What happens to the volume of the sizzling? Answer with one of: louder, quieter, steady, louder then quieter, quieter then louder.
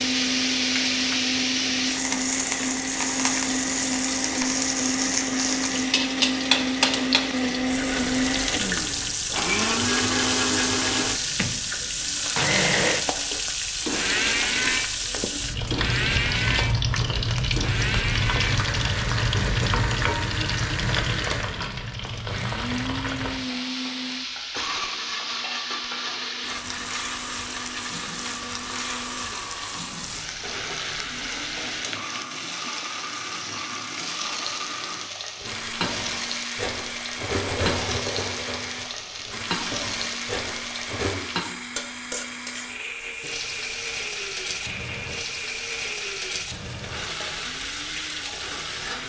quieter.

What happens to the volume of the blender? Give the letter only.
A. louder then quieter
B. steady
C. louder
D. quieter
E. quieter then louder
D.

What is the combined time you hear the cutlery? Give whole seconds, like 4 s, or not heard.
6 s.